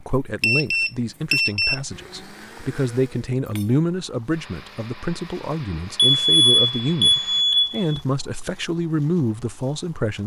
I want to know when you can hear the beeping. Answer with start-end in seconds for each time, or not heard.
0.4-1.8, 6.0-8.0.